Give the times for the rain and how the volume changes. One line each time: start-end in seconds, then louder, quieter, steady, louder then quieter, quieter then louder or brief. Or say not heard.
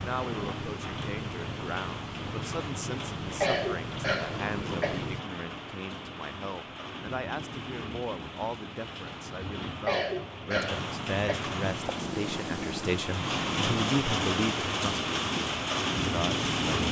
0.0-16.8 louder.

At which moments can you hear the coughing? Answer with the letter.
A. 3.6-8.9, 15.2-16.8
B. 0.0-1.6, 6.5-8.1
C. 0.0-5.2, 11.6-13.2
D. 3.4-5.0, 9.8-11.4
D.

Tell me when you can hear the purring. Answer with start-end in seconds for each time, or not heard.
0.0-5.2, 11.6-13.2.